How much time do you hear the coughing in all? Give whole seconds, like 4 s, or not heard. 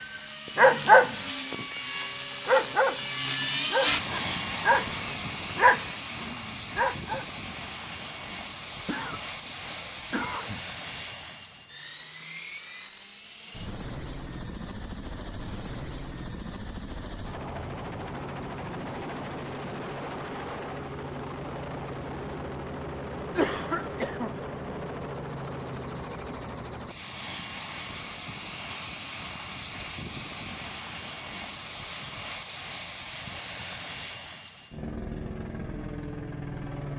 3 s.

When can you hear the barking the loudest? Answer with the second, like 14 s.
1 s.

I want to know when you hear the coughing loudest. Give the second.
24 s.